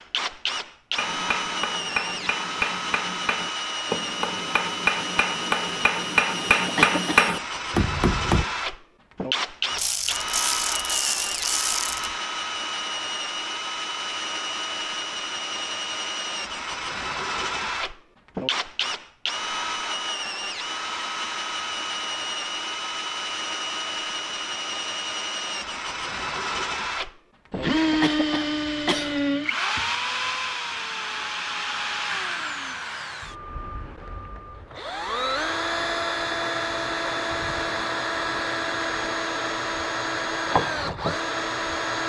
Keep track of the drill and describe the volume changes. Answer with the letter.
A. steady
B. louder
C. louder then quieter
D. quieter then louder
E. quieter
A.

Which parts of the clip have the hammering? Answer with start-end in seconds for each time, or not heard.
0.9-8.4.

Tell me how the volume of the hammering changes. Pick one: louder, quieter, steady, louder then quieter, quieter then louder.
louder.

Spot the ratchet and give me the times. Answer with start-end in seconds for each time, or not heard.
9.7-12.2.